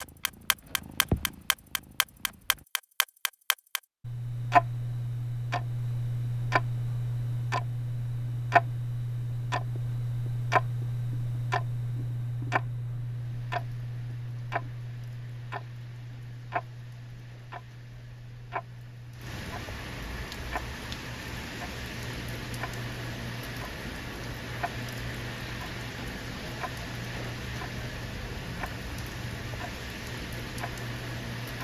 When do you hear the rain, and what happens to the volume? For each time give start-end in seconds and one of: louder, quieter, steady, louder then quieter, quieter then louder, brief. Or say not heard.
13.0-31.5 louder.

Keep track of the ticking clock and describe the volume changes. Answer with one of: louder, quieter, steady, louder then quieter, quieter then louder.
quieter.